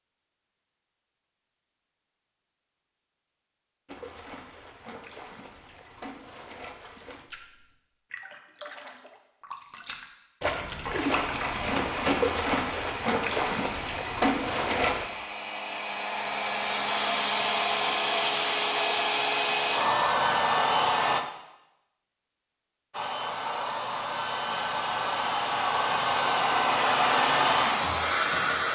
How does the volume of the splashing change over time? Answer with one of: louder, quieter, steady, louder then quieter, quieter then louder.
louder.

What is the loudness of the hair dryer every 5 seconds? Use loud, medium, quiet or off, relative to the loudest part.
off, off, quiet, loud, loud, loud.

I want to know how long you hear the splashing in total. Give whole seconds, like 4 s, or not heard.
11 s.